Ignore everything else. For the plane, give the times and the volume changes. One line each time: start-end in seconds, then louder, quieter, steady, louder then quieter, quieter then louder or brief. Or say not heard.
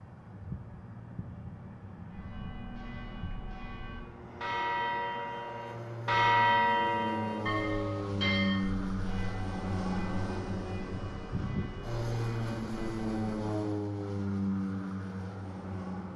0.0-16.1 louder.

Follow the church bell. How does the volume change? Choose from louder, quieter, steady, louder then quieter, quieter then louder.
louder then quieter.